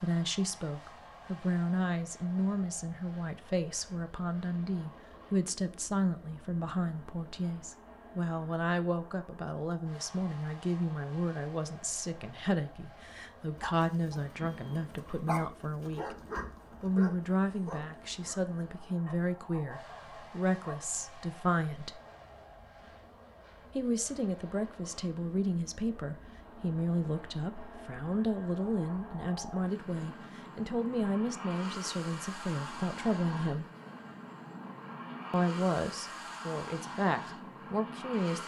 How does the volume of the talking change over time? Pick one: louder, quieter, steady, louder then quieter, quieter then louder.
steady.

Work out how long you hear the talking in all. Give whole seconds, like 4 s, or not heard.
34 s.